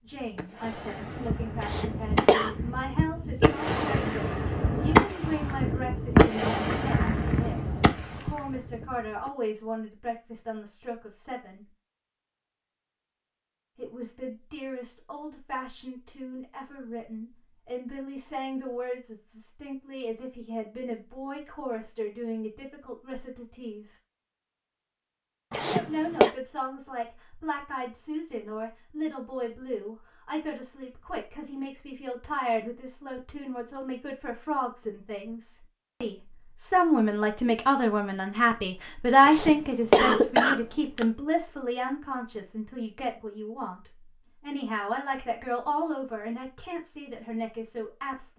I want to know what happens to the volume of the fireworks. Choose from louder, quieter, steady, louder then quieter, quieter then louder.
louder then quieter.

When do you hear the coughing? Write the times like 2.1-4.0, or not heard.
1.6-2.5, 25.5-26.3, 39.2-41.0.